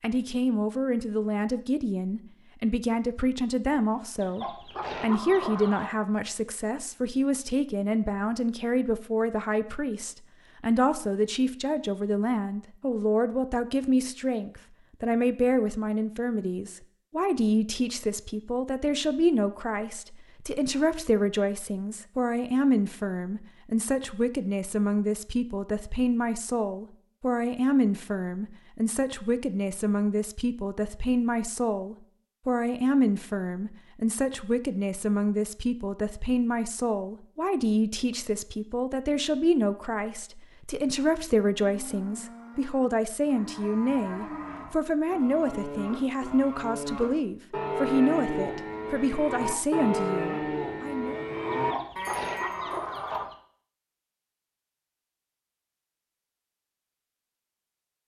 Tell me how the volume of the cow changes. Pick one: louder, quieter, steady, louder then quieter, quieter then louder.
louder.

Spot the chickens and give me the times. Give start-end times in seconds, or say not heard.
4.2-6.0, 51.5-53.4.